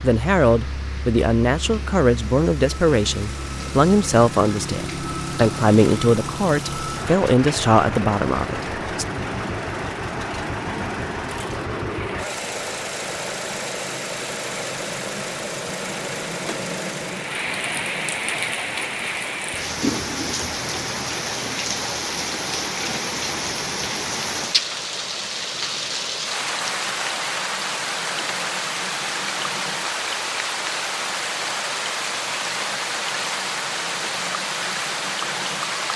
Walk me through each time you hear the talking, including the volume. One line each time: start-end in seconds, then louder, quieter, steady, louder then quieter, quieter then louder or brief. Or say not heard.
0.0-9.1 steady.